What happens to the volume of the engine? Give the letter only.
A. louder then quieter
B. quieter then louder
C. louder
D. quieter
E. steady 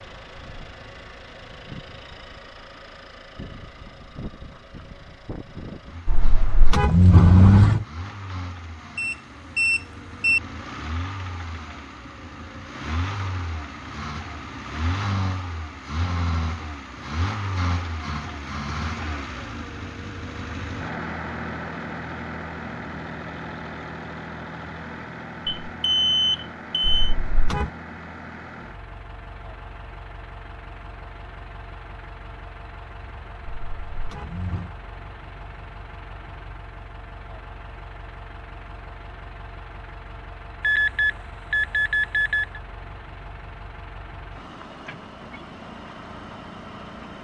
A.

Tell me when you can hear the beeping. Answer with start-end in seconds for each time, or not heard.
8.9-10.4, 25.4-27.1, 40.6-42.6.